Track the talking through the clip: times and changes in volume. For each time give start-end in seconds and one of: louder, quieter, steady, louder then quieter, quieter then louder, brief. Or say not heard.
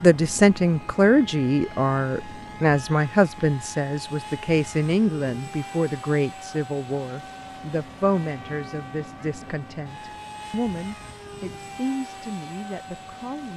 0.0-13.5 quieter.